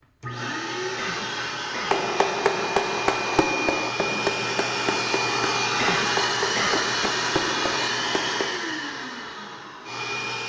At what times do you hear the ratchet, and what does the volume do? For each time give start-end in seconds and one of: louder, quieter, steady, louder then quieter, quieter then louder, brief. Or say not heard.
not heard.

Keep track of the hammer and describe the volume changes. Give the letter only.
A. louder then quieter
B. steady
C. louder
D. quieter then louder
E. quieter
E.